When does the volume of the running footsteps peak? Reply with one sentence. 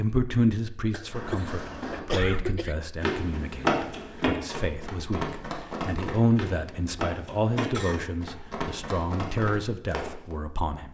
The loudest moment of the running footsteps is at 4 seconds.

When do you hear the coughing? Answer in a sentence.
You can hear the coughing from 0.9 to 2.8 s and from 7.5 to 8.1 s.